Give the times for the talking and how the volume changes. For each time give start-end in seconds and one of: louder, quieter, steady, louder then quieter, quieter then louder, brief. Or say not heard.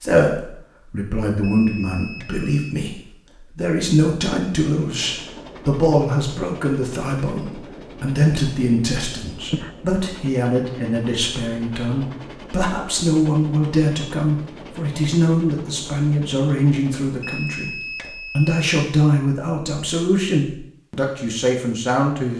0.0-22.3 steady.